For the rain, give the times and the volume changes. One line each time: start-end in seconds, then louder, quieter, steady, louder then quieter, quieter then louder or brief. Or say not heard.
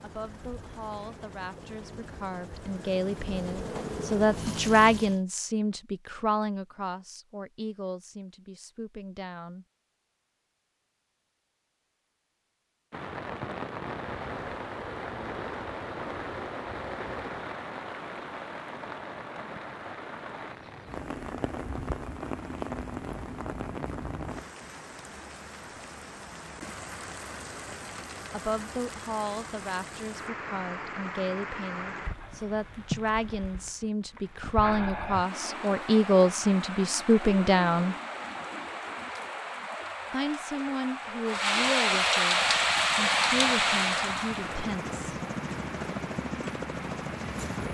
12.9-47.6 louder.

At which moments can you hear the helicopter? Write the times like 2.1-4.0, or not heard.
0.0-5.2, 42.2-47.6.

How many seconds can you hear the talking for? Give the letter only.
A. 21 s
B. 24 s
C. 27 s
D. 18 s
B.